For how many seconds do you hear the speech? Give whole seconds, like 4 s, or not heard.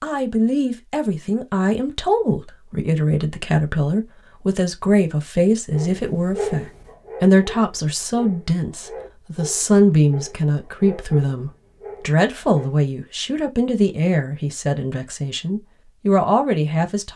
17 s.